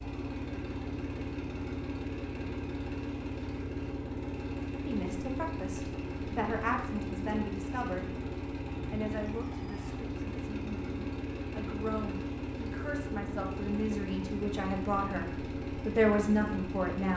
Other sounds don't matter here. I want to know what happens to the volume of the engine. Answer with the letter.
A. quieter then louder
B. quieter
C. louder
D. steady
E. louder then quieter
D.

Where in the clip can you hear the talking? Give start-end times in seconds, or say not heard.
4.8-8.2, 8.9-17.1.